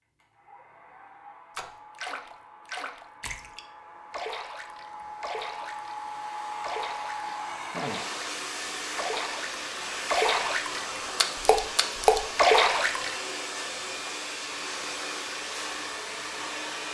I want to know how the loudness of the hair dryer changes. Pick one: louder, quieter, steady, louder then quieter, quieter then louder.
louder.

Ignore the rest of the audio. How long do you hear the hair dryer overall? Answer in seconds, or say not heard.
17 s.